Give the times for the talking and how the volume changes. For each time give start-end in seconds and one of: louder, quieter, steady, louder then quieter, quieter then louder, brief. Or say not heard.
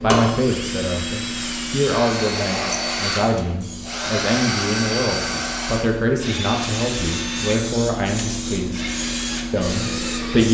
0.0-8.9 steady
9.5-10.5 brief.